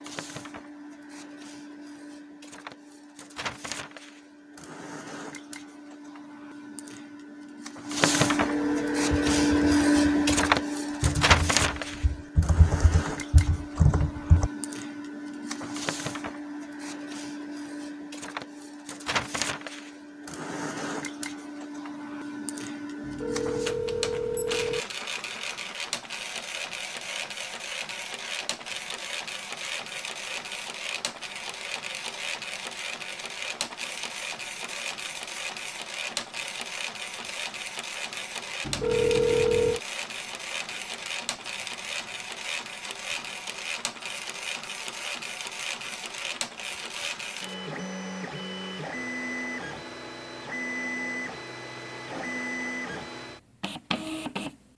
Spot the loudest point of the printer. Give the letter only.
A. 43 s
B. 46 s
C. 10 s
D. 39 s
C.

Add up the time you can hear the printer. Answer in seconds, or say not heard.
55 s.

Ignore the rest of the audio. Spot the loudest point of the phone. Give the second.
39 s.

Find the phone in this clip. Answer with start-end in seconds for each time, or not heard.
8.3-9.8, 23.0-24.9, 38.6-39.8.